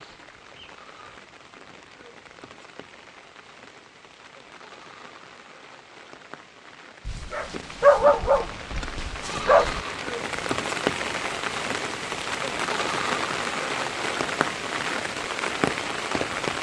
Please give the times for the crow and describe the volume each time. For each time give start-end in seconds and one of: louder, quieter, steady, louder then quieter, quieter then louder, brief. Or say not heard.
not heard.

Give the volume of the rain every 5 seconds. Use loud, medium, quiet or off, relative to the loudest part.
quiet, medium, loud, loud.